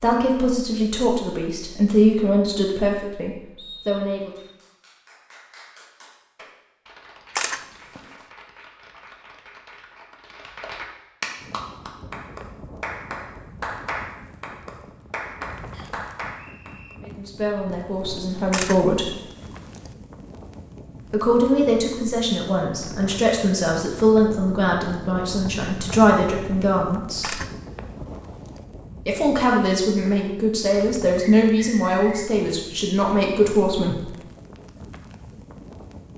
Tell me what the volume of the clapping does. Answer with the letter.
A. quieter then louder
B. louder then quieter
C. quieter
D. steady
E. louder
E.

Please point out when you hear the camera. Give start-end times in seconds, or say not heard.
7.3-8.2, 18.5-19.9, 27.2-28.6.